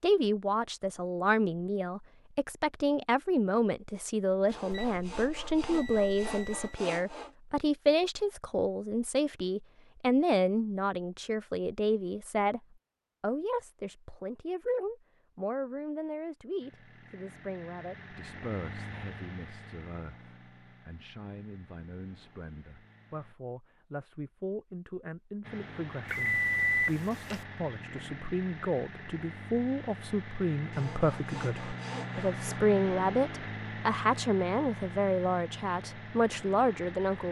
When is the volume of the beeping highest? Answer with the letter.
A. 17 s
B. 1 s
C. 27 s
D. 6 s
C.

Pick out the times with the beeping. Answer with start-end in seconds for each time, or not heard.
4.7-6.8, 26.1-27.4.